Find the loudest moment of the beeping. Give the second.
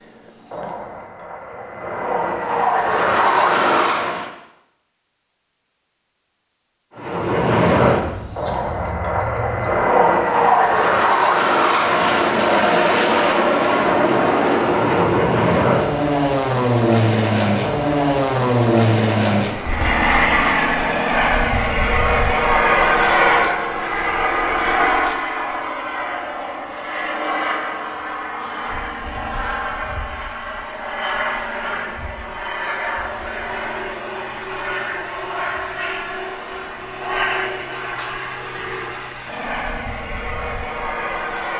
8 s.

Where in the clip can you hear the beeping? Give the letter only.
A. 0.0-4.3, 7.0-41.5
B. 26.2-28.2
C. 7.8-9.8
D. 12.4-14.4
C.